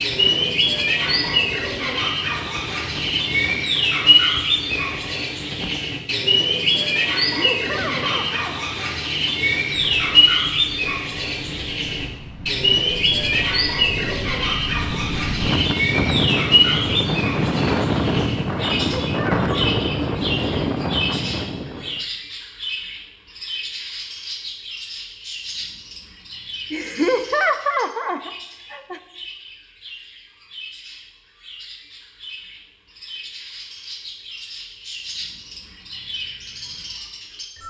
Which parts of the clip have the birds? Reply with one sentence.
The birds can be heard from 0.0 to 37.6 s.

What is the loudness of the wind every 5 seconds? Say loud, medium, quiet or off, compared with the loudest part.
quiet, quiet, quiet, loud, loud, off, off, off.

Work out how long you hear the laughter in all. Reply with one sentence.
The laughter can be heard for 5 seconds in total.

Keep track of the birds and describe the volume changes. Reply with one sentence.
The loudness of the birds goes down.